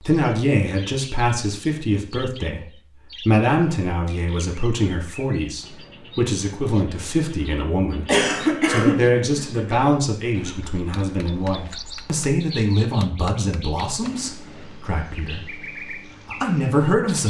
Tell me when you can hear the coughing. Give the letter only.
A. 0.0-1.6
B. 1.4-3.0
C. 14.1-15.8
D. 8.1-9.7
D.